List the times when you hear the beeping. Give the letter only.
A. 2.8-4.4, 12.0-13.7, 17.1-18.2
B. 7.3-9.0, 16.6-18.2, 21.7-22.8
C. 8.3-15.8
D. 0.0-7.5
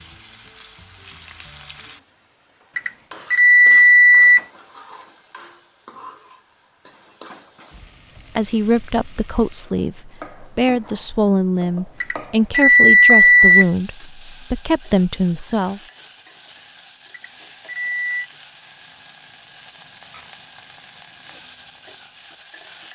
A.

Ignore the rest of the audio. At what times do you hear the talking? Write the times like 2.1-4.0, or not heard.
8.3-15.8.